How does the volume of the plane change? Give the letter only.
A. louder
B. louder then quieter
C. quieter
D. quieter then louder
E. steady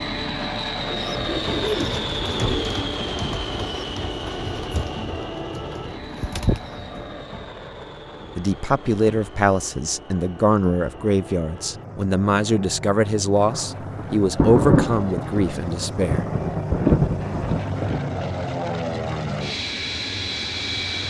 D.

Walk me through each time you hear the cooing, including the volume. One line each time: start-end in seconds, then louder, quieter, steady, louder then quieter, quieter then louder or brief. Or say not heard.
0.8-7.2 quieter then louder.